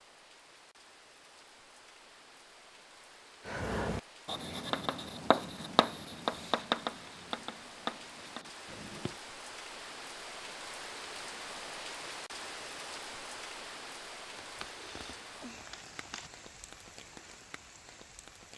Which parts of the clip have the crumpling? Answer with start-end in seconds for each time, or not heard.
14.3-16.3.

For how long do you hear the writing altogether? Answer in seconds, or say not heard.
6 s.